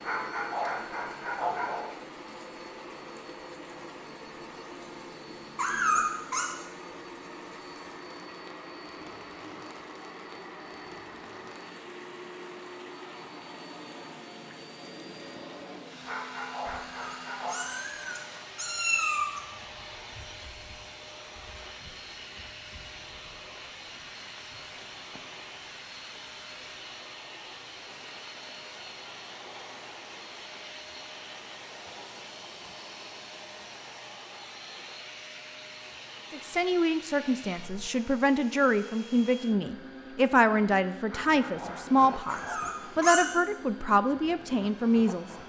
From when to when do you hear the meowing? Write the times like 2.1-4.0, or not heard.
5.5-6.5, 16.8-19.4, 42.2-43.2.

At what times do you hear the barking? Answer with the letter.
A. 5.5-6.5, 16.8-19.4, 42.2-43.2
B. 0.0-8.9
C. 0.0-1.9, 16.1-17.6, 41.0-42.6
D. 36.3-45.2
C.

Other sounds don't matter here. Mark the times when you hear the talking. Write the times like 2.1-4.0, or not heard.
36.3-45.2.